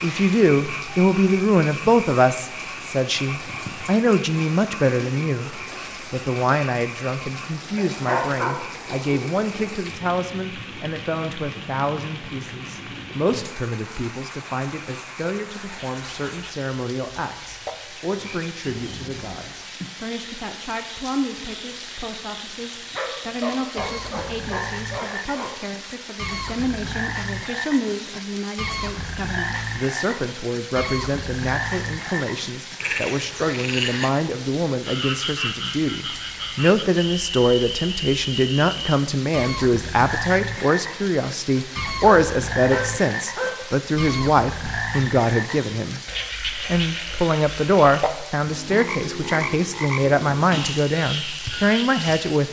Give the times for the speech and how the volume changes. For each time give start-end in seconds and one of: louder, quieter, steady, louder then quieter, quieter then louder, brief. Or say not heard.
0.0-52.4 quieter then louder.